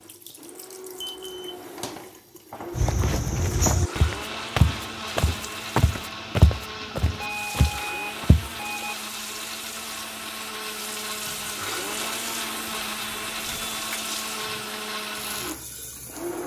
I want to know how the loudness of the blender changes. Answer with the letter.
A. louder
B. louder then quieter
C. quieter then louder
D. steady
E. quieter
A.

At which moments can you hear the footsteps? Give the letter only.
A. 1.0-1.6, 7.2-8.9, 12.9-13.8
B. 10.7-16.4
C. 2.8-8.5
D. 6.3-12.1
C.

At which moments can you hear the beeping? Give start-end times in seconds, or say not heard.
1.0-1.6, 7.2-8.9, 12.9-13.8.